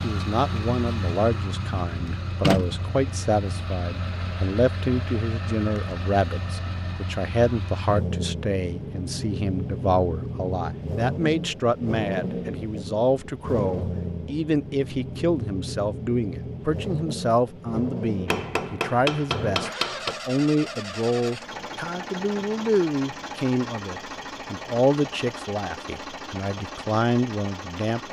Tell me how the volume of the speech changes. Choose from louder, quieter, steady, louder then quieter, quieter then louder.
steady.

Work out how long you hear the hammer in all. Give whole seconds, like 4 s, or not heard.
2 s.